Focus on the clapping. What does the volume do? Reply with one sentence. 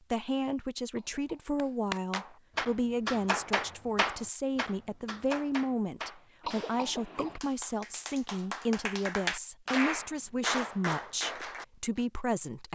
The volume of the clapping goes down, then up.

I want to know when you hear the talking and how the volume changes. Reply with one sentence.
The talking can be heard from 0.1 to 12.6 s, at a steady volume.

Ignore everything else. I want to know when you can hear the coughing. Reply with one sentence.
The coughing can be heard from 0.9 to 1.5 s and from 6.4 to 7.4 s.